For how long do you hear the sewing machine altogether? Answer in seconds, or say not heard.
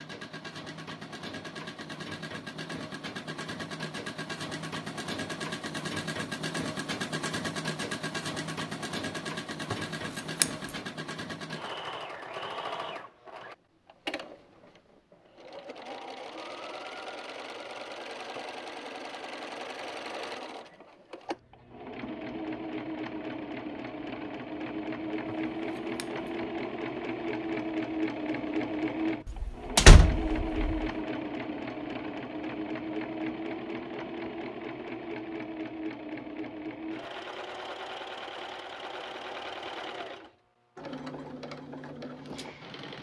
43 s.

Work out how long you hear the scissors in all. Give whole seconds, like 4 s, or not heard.
2 s.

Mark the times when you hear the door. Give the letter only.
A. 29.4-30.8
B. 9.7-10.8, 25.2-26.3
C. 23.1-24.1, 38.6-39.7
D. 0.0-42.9
A.